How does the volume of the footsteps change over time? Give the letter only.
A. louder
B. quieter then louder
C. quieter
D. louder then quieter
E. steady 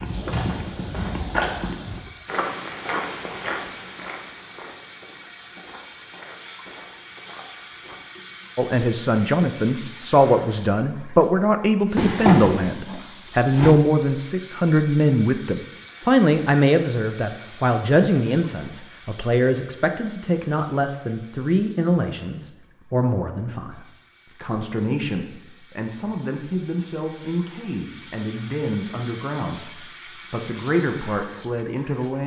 C.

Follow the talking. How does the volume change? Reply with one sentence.
The volume of the talking goes down.